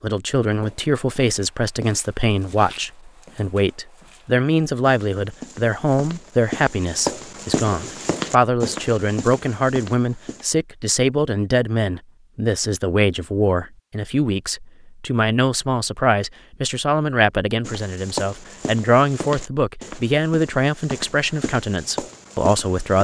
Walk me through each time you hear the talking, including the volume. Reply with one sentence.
You can hear the talking from 0.0 to 23.0 s, at a steady volume.